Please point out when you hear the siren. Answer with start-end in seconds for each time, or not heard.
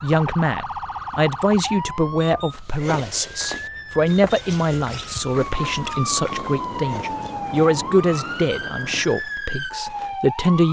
0.0-10.6.